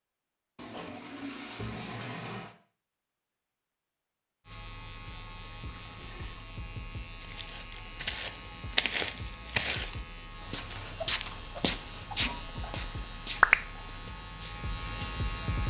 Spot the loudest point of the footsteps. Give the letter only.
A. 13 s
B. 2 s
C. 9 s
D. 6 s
C.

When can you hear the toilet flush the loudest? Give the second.
2 s.